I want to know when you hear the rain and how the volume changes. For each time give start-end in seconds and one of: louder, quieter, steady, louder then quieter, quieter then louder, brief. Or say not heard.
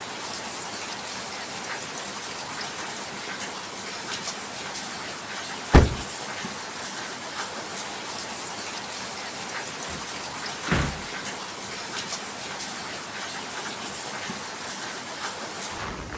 0.0-16.1 steady.